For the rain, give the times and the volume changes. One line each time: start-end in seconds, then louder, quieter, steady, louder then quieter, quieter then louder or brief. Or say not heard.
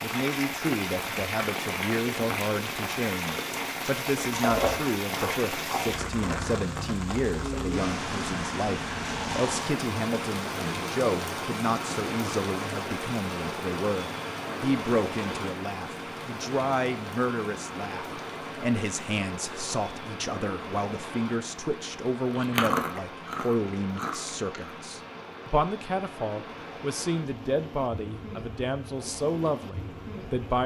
0.0-30.6 quieter.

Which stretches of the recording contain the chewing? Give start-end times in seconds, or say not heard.
4.2-6.9, 22.4-24.8.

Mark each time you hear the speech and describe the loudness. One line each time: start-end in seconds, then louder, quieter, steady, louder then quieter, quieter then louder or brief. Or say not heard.
0.0-30.6 steady.